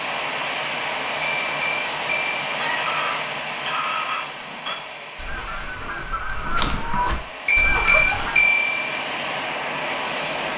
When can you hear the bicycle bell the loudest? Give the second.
8 s.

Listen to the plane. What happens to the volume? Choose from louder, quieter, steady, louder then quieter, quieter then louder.
quieter then louder.